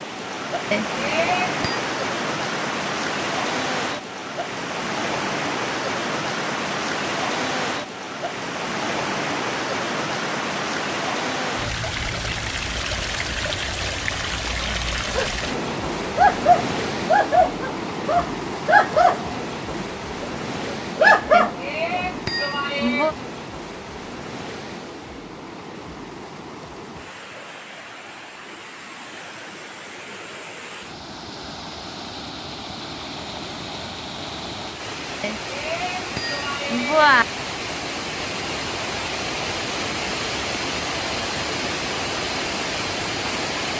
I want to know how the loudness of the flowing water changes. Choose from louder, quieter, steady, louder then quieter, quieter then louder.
quieter then louder.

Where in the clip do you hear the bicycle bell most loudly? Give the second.
37 s.